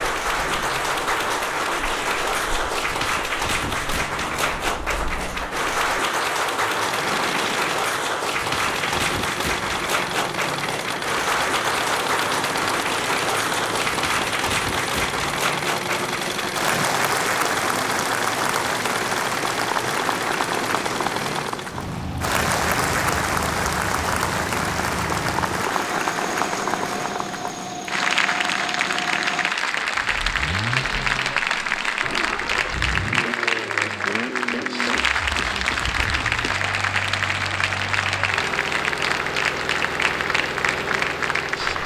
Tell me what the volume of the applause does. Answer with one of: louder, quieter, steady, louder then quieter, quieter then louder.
steady.